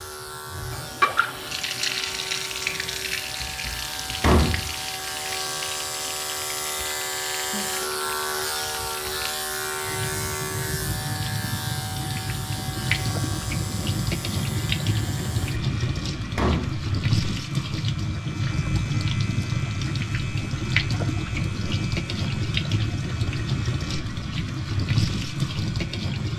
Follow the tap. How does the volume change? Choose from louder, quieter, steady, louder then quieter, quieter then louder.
quieter then louder.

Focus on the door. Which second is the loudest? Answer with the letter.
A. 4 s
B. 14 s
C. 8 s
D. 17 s
A.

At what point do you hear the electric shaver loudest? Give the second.
8 s.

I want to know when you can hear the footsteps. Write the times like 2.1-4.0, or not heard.
not heard.